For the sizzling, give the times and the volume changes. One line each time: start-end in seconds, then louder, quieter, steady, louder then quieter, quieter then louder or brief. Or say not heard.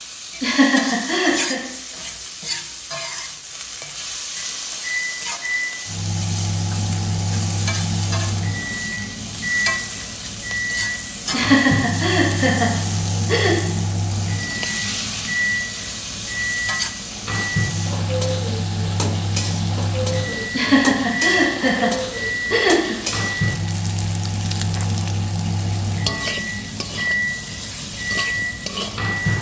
0.0-29.3 steady.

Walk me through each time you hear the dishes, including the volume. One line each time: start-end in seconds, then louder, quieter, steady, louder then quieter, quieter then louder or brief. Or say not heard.
not heard.